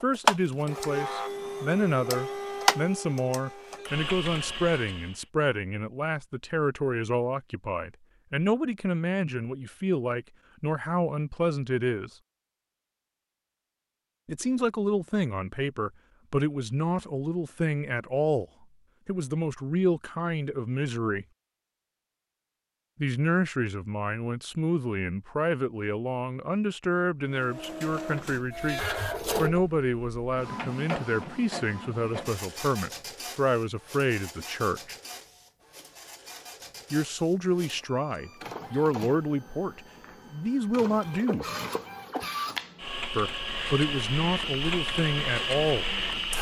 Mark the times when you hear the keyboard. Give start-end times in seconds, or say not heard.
not heard.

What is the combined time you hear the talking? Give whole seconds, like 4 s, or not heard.
38 s.